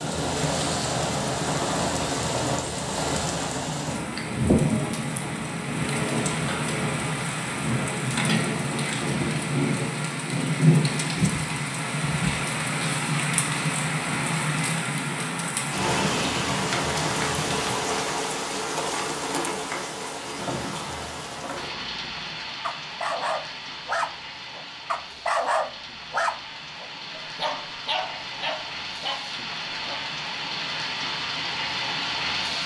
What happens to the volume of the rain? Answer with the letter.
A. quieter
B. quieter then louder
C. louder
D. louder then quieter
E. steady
A.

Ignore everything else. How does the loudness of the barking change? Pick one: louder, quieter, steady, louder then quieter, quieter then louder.
louder then quieter.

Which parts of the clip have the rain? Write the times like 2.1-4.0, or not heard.
0.0-32.6.